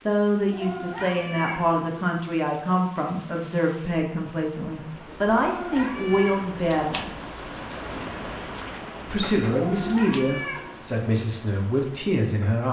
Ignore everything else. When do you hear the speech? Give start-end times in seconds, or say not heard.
0.1-7.0, 9.1-12.6.